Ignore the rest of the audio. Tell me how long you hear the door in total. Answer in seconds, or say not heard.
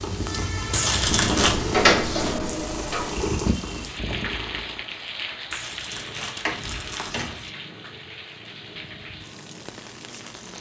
3 s.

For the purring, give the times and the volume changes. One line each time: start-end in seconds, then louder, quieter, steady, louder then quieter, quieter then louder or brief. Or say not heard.
0.0-10.5 quieter.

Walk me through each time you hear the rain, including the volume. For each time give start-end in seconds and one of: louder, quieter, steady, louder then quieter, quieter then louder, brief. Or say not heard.
0.0-10.5 quieter.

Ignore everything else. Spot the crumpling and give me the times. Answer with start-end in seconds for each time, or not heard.
0.7-1.6, 5.5-7.5.